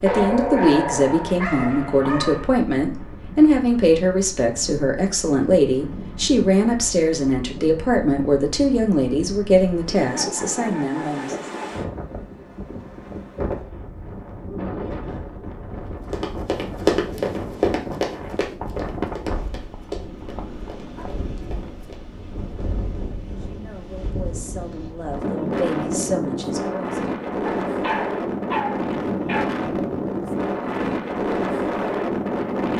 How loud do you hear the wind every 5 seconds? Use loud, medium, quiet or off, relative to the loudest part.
quiet, quiet, medium, medium, quiet, loud, loud.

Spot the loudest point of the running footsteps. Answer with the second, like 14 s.
17 s.